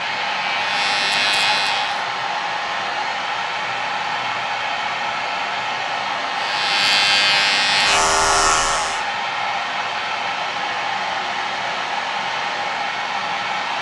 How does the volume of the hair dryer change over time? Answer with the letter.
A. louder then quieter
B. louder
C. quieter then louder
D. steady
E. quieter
D.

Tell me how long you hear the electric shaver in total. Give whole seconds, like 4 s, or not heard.
5 s.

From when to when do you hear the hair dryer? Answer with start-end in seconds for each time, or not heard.
0.0-13.7.